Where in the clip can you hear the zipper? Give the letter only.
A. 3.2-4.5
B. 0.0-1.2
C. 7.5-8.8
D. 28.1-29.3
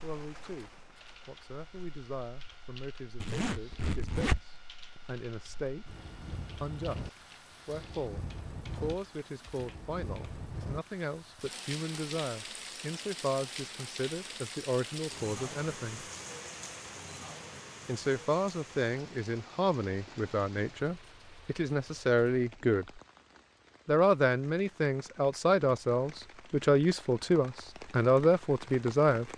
A.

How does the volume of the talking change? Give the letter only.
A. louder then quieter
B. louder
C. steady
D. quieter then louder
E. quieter
B.